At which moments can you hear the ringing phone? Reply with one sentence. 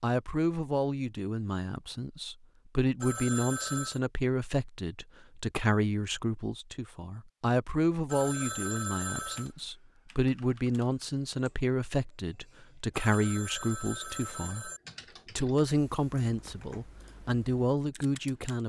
The ringing phone can be heard from 3.0 to 4.0 s, from 8.1 to 9.5 s and from 12.9 to 14.8 s.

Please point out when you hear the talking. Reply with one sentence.
The talking can be heard from 0.0 to 14.7 s and from 15.3 to 18.6 s.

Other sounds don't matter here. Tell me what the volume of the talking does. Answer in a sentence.
The volume of the talking stays about the same.